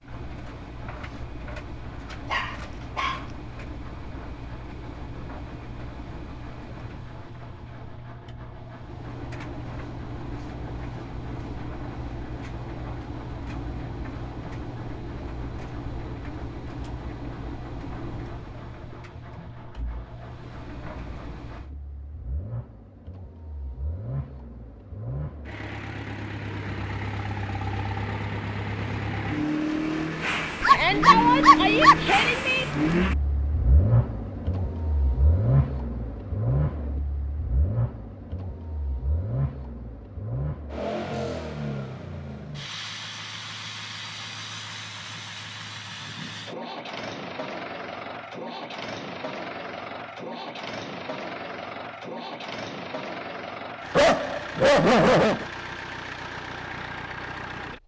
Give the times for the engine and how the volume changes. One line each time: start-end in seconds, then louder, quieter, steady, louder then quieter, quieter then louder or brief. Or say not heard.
0.0-57.8 louder then quieter.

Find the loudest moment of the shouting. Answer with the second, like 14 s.
31 s.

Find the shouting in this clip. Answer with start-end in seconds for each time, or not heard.
30.6-32.6.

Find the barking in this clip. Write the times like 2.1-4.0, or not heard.
2.3-3.2, 30.6-31.9, 54.0-55.5.